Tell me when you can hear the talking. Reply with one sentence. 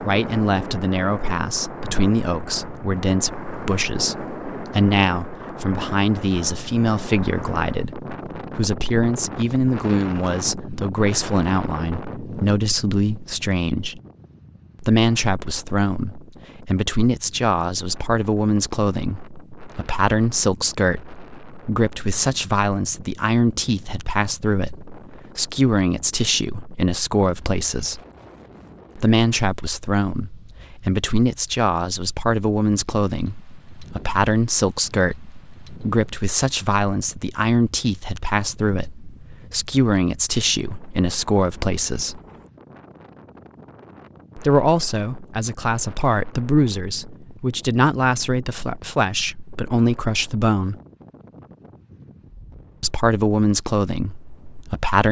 The talking can be heard from 0.0 to 14.0 s, from 14.8 to 28.0 s, from 28.9 to 42.2 s, from 44.4 to 50.8 s and from 52.8 to 55.0 s.